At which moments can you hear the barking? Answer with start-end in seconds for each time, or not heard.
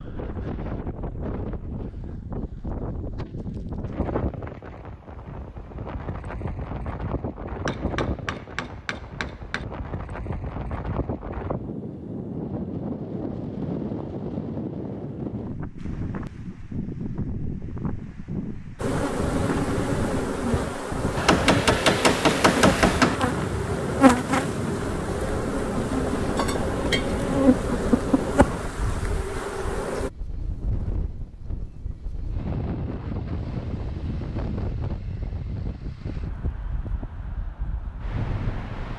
not heard.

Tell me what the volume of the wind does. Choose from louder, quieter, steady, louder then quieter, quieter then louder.
steady.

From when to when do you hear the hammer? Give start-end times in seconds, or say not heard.
7.7-9.7, 21.1-23.2.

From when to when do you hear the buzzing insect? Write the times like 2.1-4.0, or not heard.
18.8-30.1.